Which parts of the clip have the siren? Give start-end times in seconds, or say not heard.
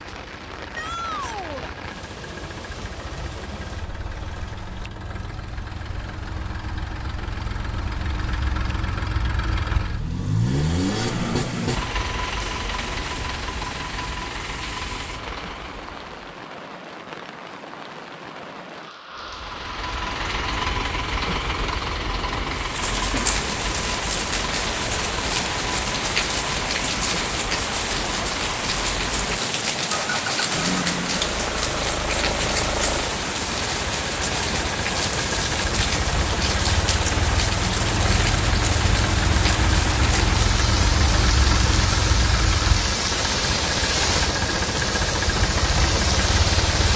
not heard.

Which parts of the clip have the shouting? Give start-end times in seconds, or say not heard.
0.8-1.7.